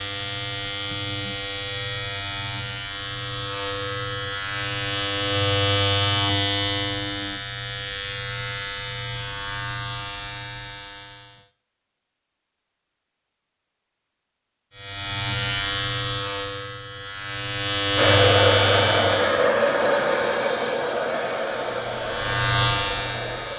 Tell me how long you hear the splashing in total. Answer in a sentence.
You can't hear the splashing here.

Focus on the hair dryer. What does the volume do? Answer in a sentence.
The volume of the hair dryer goes down.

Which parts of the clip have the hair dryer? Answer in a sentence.
You can hear the hair dryer from 17.9 to 23.5 s.